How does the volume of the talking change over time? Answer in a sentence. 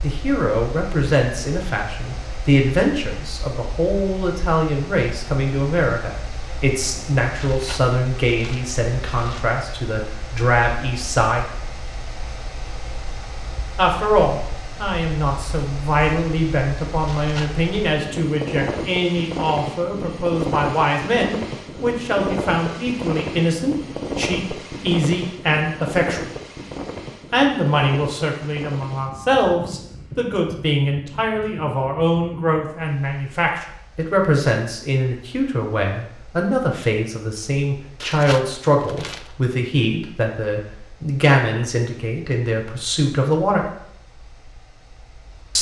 The loudness of the talking stays about the same.